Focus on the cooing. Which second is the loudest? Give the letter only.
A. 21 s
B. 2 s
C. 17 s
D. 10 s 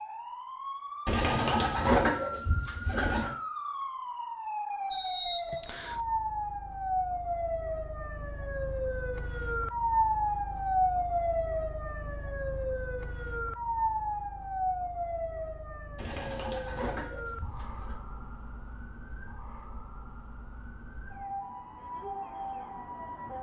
B.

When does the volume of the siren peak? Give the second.
10 s.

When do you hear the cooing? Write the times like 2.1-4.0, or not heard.
1.1-3.3, 15.9-17.9.